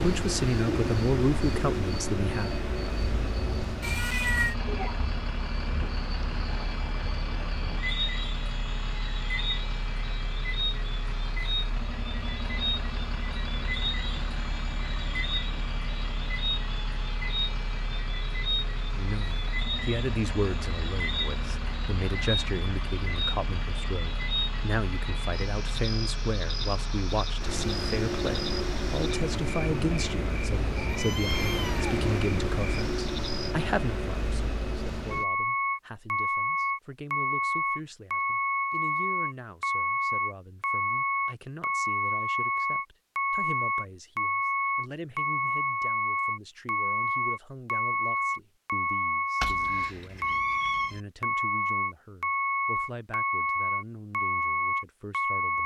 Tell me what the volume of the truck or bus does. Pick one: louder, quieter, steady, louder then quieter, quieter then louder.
louder.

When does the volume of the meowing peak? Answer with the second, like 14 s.
4 s.